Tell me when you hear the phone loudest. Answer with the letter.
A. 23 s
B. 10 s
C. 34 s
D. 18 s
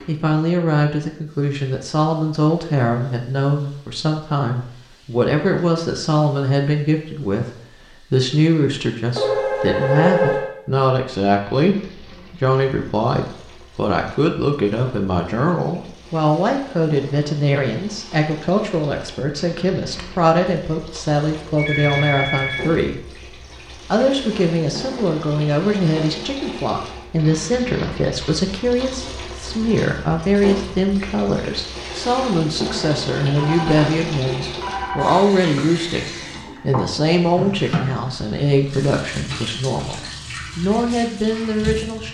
B.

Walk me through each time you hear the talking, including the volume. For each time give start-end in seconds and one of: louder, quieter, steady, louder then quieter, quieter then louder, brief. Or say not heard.
0.1-42.0 steady.